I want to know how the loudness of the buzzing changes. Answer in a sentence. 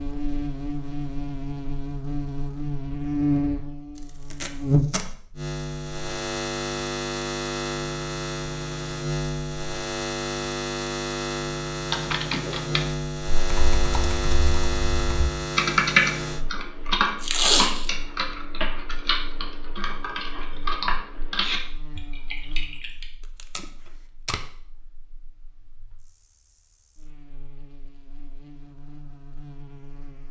The volume of the buzzing goes down.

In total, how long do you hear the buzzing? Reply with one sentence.
The buzzing can be heard for 30 seconds in total.